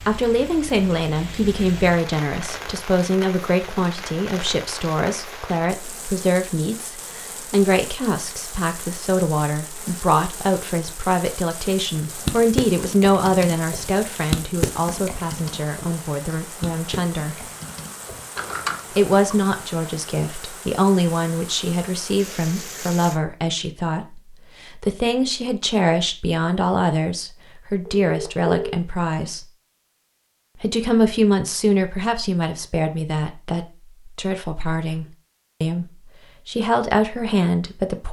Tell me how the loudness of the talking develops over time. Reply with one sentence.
The volume of the talking stays about the same.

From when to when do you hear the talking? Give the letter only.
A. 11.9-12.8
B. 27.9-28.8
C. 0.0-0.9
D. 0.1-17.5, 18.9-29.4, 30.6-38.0
D.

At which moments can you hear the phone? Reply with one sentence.
You can hear the phone from 27.9 to 28.8 s.